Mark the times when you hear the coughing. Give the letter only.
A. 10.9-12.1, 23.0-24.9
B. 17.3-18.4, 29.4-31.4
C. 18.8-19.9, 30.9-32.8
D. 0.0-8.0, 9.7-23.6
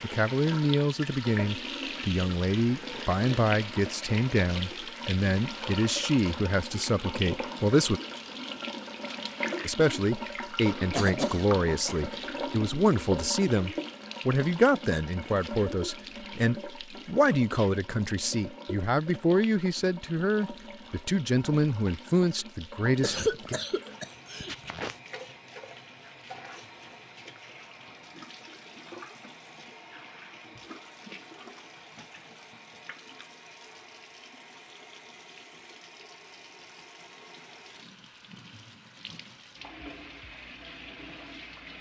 A.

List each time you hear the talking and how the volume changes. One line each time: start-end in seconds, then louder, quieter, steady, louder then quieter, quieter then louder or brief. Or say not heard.
0.0-8.0 steady
9.7-23.6 steady.